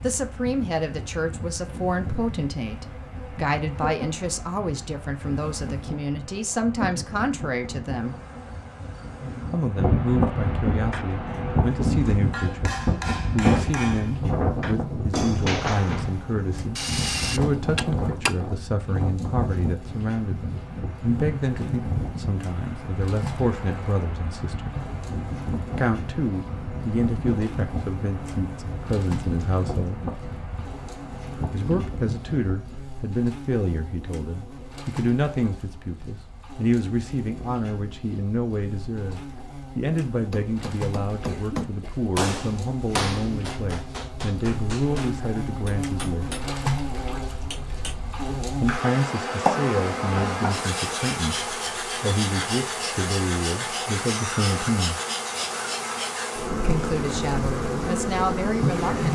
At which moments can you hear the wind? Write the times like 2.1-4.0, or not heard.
0.0-32.8.